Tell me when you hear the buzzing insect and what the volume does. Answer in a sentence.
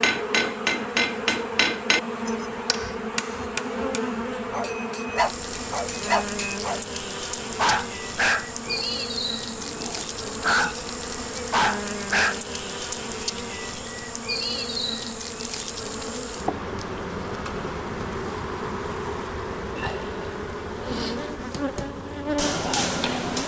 The buzzing insect can be heard from 0.0 to 23.4 s, at a steady volume.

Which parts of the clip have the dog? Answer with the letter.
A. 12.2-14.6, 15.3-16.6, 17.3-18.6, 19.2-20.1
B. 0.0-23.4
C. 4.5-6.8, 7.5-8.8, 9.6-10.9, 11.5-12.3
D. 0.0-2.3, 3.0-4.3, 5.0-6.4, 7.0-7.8
C.